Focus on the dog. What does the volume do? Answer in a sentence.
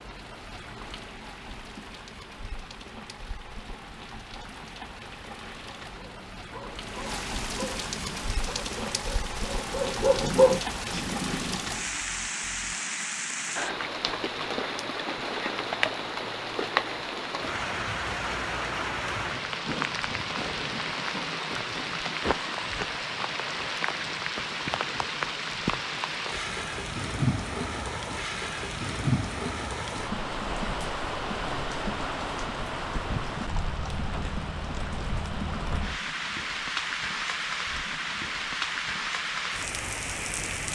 The volume of the dog goes up.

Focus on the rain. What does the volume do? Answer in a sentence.
The loudness of the rain goes up.